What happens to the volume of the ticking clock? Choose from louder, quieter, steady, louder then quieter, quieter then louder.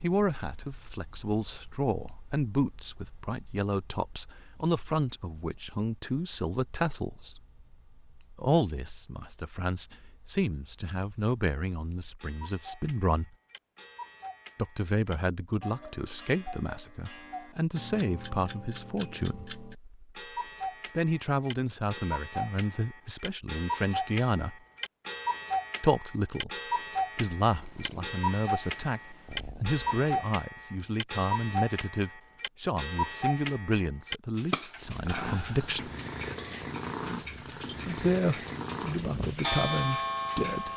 louder.